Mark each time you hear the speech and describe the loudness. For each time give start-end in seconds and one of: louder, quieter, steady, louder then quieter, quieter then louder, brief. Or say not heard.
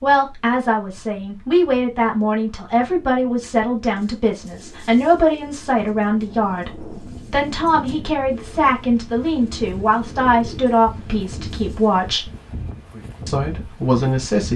0.0-12.3 steady
13.2-14.5 brief.